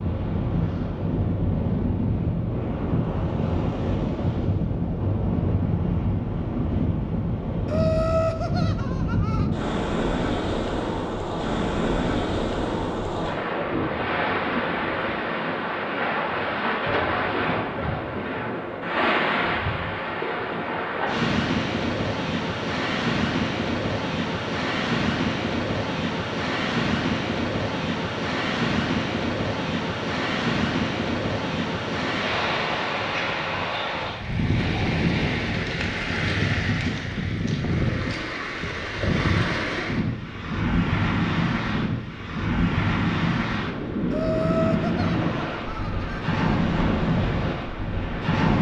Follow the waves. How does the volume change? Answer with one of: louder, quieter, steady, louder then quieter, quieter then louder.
steady.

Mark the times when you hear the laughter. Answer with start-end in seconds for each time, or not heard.
7.7-9.5, 44.1-46.4.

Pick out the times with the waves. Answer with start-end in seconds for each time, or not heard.
0.0-48.5.